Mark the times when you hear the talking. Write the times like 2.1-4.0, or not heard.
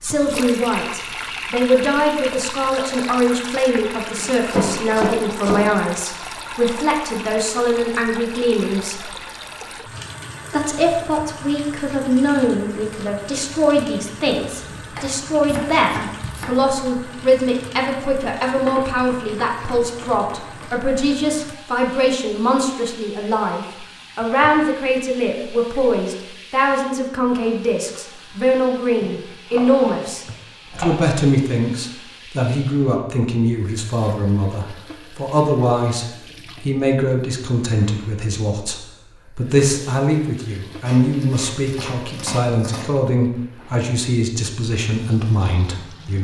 0.0-9.0, 10.5-46.2.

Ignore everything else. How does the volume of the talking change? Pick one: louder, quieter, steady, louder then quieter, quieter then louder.
steady.